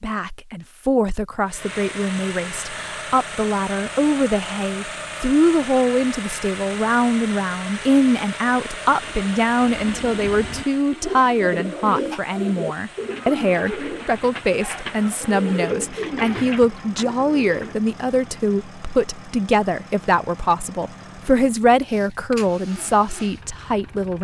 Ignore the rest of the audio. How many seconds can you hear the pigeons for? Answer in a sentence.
The pigeons can be heard for 9 seconds in total.